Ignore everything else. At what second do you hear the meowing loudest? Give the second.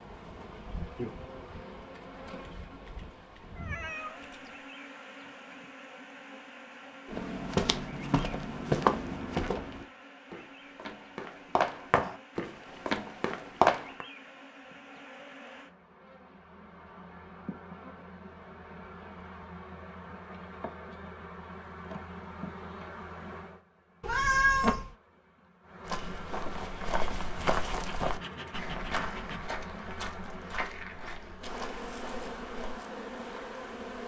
24 s.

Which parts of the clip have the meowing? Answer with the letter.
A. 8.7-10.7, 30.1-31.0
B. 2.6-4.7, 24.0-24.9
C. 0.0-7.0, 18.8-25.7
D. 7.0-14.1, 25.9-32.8
B.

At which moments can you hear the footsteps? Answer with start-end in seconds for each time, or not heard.
7.0-14.1, 25.9-32.8.